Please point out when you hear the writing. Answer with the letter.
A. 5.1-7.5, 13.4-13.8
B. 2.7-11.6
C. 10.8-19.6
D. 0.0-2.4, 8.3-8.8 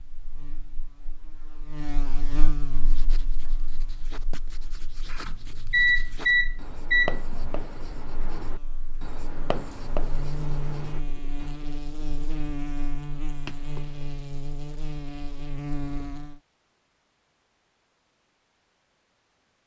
B.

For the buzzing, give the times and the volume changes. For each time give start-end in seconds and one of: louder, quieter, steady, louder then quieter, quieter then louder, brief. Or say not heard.
0.0-16.4 quieter then louder.